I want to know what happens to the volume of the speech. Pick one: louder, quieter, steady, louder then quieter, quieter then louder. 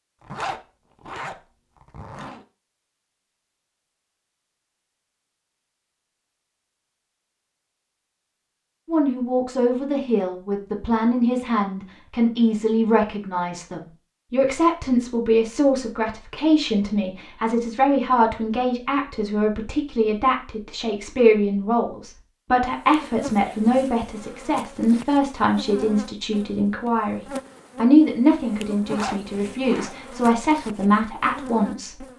steady.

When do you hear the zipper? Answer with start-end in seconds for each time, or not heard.
0.2-2.5, 28.8-29.9.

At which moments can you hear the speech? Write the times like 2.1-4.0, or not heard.
8.8-32.0.